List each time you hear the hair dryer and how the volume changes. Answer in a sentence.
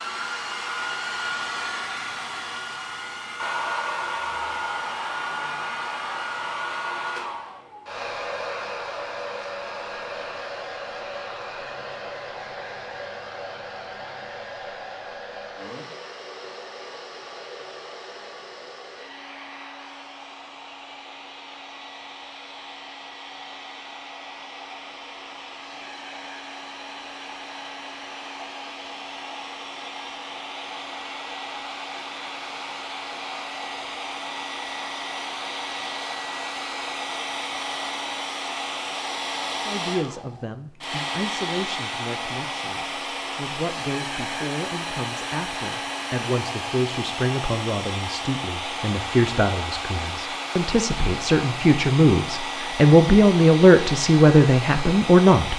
You can hear the hair dryer from 0.0 to 55.5 s, getting quieter then louder.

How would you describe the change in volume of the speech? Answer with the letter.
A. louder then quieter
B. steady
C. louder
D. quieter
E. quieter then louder
C.